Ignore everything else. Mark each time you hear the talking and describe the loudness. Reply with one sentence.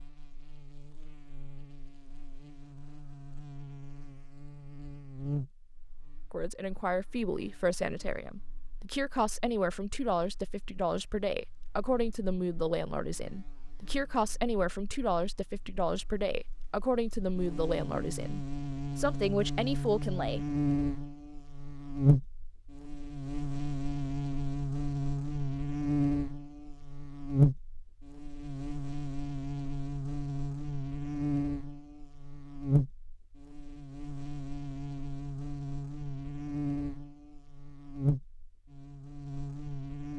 The talking can be heard from 6.3 to 20.6 s, at a steady volume.